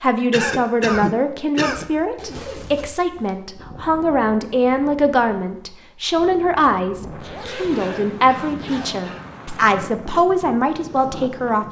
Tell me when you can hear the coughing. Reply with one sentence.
You can hear the coughing from 0.3 to 1.9 s and from 7.8 to 9.2 s.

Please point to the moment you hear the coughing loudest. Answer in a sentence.
The loudest moment of the coughing is at 1 second.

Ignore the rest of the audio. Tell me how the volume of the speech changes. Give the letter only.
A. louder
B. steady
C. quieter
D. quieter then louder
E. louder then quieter
B.